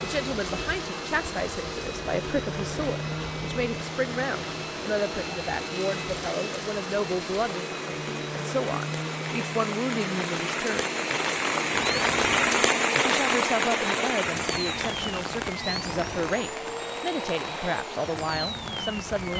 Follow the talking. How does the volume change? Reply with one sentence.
The loudness of the talking stays about the same.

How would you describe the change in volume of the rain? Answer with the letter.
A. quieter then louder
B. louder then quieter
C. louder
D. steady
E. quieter
B.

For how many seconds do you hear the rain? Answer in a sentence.
The rain can be heard for 19 seconds in total.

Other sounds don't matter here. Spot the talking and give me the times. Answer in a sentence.
You can hear the talking from 0.0 to 10.9 s and from 13.1 to 19.3 s.